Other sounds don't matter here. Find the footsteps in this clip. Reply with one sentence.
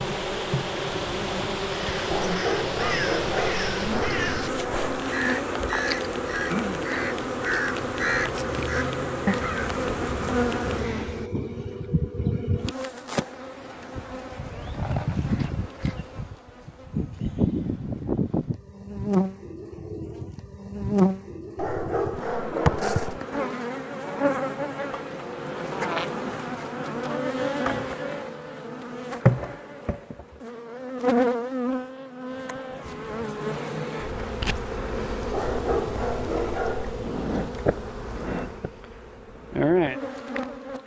The footsteps can't be heard in this clip.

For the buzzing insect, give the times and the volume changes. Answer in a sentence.
The buzzing insect can be heard from 0.0 to 40.8 s, at a steady volume.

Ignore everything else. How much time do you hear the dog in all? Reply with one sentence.
You can hear the dog for 6 seconds altogether.